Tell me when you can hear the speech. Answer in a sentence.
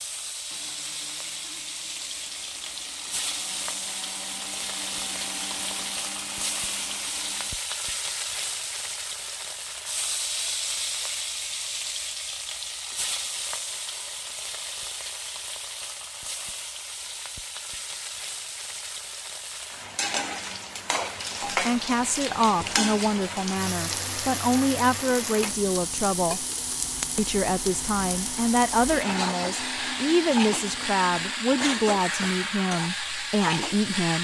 You can hear the speech from 21.5 to 26.4 s and from 27.1 to 34.1 s.